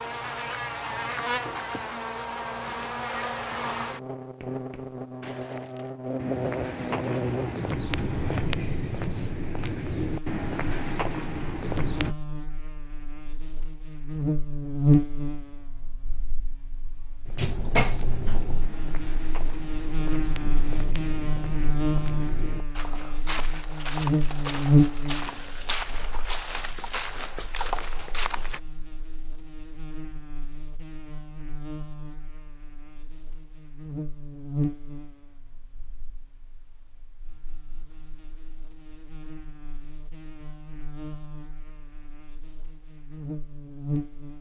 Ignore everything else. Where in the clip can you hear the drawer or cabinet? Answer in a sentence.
The drawer or cabinet can be heard from 17.4 to 18.7 s.